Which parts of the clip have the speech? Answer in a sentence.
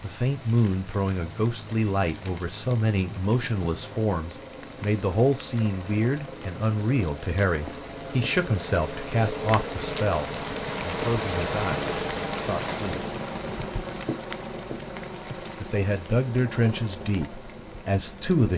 You can hear the speech from 0.0 to 13.1 s and from 15.6 to 18.5 s.